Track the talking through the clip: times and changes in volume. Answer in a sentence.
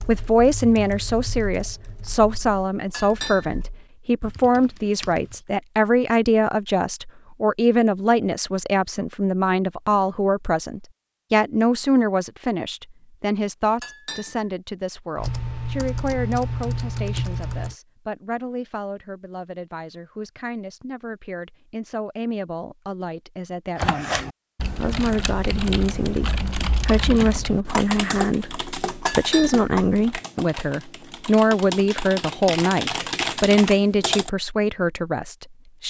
You can hear the talking from 0.1 to 35.8 s, getting quieter then louder.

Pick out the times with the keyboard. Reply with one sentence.
The keyboard can be heard from 0.0 to 5.5 s, from 15.2 to 17.8 s and from 23.8 to 34.3 s.